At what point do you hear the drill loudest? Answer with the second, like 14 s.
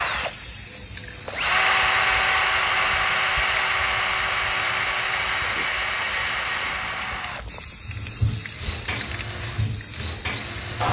2 s.